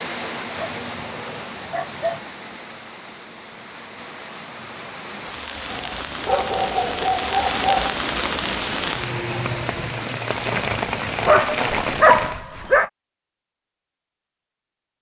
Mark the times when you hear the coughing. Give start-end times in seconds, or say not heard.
not heard.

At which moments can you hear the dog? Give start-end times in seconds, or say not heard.
0.6-2.2, 5.7-8.0, 11.2-12.9.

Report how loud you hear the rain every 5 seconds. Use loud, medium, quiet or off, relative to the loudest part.
medium, loud, loud.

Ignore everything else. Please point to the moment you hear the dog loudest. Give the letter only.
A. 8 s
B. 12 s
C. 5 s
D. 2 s
B.